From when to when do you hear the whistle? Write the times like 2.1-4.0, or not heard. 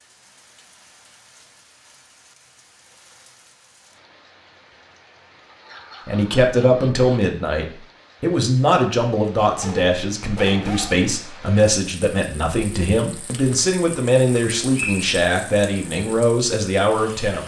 14.7-15.2.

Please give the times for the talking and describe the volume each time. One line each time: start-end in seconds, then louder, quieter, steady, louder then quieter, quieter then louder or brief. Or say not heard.
6.0-17.4 steady.